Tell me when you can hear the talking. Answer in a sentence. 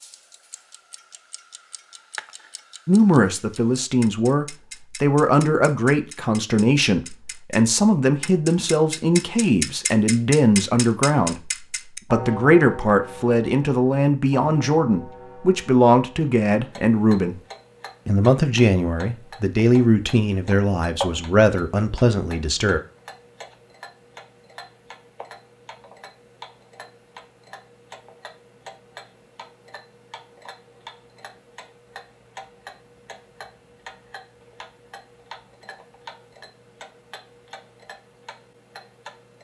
The talking can be heard from 2.9 to 17.4 s and from 18.1 to 22.8 s.